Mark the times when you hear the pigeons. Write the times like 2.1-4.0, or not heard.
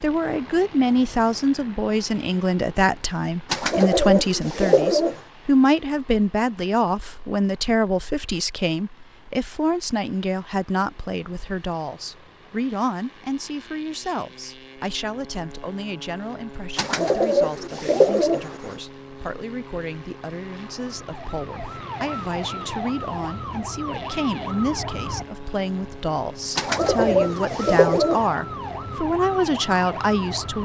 3.5-5.2, 16.8-18.8, 26.6-28.2.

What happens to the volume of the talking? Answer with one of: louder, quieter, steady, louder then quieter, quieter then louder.
quieter then louder.